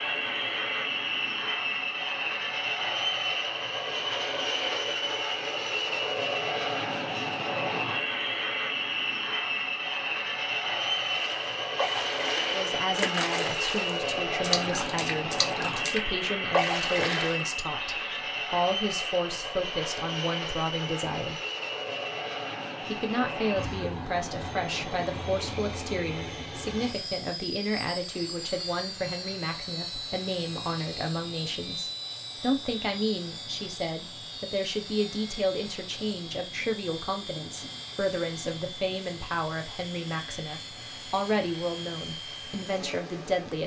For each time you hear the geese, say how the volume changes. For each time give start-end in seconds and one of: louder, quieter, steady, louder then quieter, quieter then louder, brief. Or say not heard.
not heard.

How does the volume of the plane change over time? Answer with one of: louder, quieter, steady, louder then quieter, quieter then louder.
quieter.